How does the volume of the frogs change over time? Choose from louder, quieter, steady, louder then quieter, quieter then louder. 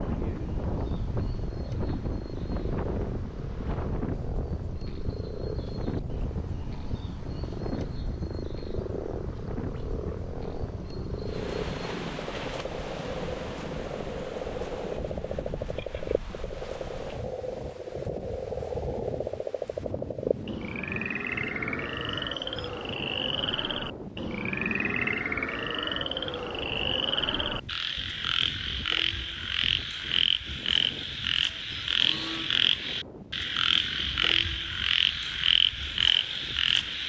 louder.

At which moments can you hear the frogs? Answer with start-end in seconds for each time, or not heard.
0.0-37.0.